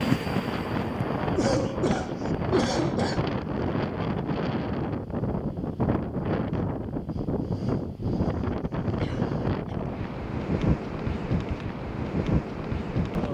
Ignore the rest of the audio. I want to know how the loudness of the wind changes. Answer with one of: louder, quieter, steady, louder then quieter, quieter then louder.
steady.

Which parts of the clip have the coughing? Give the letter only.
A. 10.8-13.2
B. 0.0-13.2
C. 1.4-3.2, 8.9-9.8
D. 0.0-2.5
C.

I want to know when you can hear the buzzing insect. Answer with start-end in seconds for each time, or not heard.
0.0-2.5.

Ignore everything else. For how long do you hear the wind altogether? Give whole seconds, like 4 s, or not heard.
13 s.